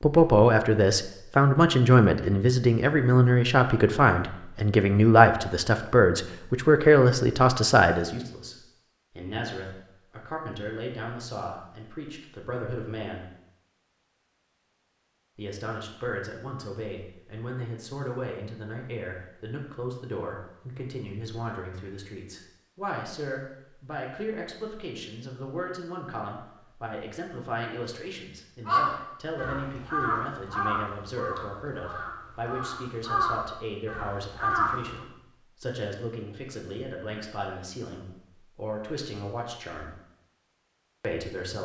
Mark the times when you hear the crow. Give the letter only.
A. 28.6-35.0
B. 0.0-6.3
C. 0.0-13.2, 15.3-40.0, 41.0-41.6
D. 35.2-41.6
A.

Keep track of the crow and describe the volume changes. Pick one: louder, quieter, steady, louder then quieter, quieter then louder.
quieter then louder.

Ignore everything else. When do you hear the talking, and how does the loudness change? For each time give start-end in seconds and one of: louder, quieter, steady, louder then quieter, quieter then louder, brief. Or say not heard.
0.0-13.2 quieter
15.3-40.0 steady
41.0-41.6 brief.